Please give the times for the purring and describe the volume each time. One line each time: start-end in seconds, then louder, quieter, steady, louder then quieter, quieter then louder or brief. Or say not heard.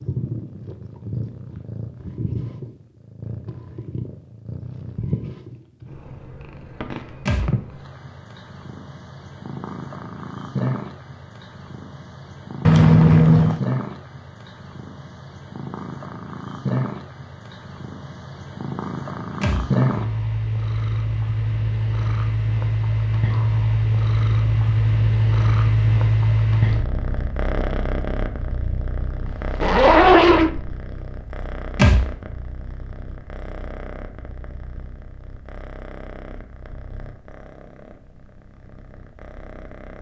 0.0-39.9 louder then quieter.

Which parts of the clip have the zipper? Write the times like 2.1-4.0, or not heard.
12.7-13.6, 29.2-30.5.